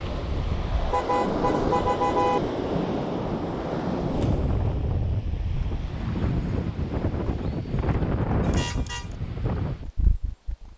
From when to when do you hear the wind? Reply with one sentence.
You can hear the wind from 0.0 to 10.7 s.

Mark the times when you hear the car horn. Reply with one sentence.
The car horn can be heard from 0.9 to 2.4 s and from 8.4 to 9.2 s.